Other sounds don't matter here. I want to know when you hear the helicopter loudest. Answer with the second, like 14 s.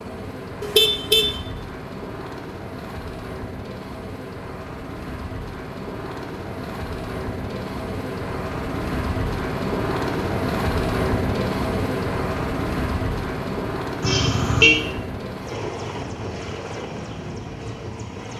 11 s.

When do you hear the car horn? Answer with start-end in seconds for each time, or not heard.
0.6-1.4, 14.0-14.8.